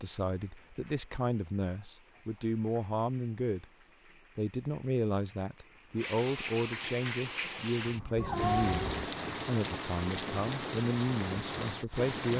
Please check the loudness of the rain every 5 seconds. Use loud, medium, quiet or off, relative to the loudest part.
quiet, loud, loud.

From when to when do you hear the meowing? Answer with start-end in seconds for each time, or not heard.
8.2-9.1.